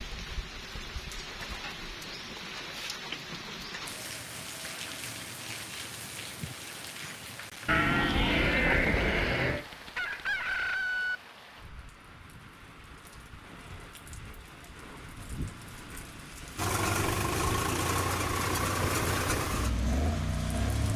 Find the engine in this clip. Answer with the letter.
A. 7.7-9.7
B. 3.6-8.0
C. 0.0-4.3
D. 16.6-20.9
D.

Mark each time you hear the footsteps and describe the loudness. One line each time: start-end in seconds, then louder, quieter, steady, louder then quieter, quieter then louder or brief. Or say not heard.
not heard.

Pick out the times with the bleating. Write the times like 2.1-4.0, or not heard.
7.7-9.7.